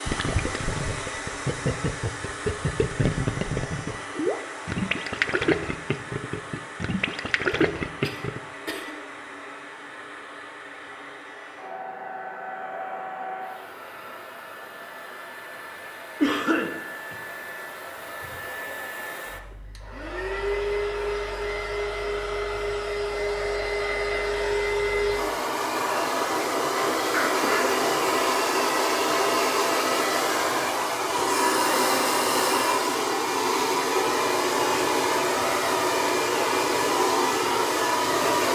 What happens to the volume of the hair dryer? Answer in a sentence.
The loudness of the hair dryer goes up.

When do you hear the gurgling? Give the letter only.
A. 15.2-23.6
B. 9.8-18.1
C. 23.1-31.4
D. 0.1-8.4
D.